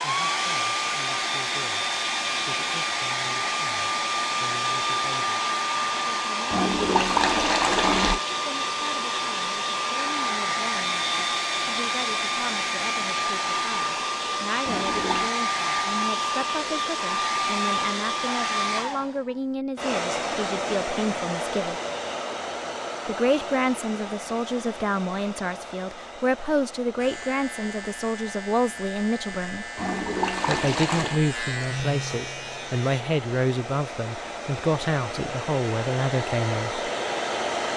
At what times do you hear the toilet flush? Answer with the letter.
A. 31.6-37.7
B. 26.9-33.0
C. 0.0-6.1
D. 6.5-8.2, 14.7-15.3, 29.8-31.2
D.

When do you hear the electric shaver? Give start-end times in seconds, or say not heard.
26.9-33.0.